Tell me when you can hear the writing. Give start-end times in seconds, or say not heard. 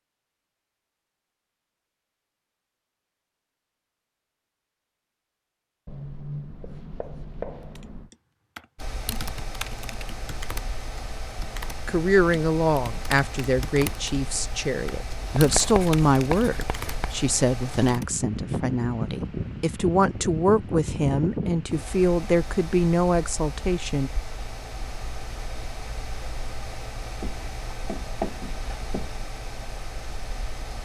5.8-8.1, 15.3-17.2, 27.2-29.1.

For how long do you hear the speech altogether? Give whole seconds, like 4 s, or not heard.
12 s.